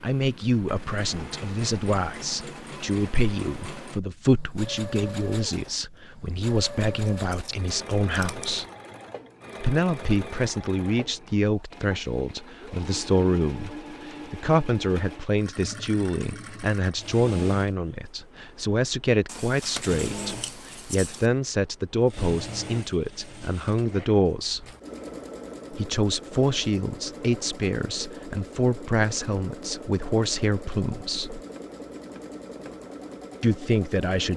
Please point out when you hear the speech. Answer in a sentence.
The speech can be heard from 0.0 to 8.7 s, from 9.6 to 24.6 s, from 25.7 to 31.4 s and from 33.4 to 34.3 s.